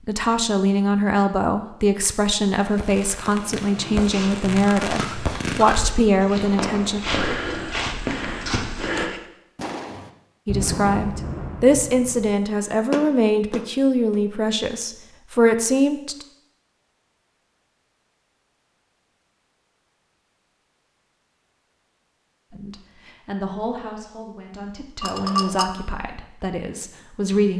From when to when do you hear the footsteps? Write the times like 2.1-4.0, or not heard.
3.9-9.1.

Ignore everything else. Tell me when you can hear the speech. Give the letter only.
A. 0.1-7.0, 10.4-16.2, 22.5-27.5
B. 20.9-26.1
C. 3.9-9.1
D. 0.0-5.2
A.